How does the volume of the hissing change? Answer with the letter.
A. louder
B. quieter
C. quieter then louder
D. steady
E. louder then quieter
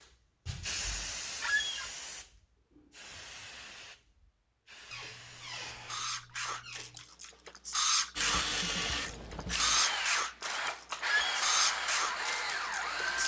C.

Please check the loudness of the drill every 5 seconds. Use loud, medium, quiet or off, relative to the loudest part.
off, loud, loud.